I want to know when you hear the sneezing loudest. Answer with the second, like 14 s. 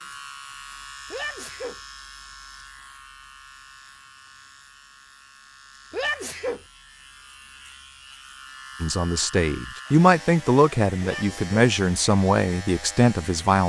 6 s.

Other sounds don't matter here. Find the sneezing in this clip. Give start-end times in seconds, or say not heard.
1.1-1.8, 5.9-6.6, 11.0-11.4.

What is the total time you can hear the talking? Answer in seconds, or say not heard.
5 s.